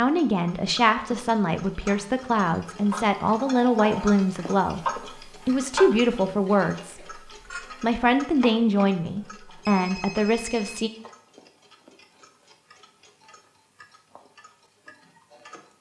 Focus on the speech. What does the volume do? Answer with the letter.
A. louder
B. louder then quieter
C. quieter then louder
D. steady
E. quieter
D.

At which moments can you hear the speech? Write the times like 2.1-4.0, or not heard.
0.0-10.9.